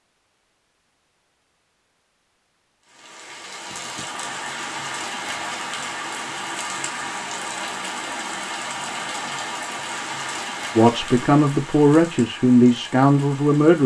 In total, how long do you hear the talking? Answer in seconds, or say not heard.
3 s.